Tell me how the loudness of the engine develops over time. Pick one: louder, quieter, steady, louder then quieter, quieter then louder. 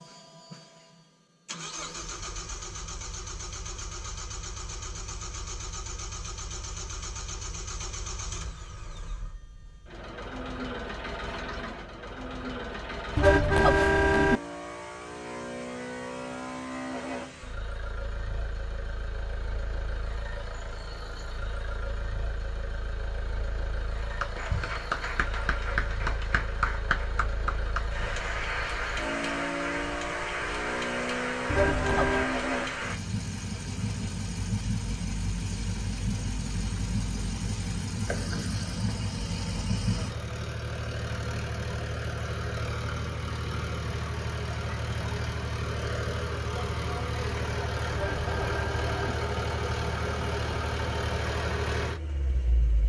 louder.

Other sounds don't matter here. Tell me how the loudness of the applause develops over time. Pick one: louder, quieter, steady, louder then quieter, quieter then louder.
steady.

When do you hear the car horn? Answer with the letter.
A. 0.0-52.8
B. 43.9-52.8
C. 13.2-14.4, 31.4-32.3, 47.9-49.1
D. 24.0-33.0
C.